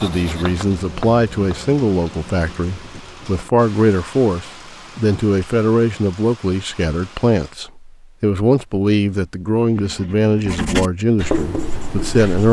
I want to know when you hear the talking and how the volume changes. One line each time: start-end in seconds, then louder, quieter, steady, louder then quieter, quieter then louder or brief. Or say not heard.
0.0-12.4 steady.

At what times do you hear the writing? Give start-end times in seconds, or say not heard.
0.0-1.6, 9.7-12.4.